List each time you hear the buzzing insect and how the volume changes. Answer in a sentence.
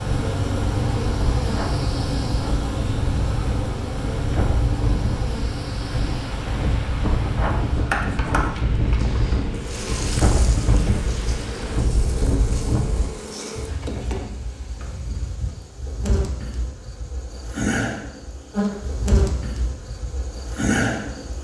The buzzing insect can be heard from 0.0 to 21.3 s, getting quieter then louder.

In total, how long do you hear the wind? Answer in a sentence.
The wind can be heard for 13 seconds in total.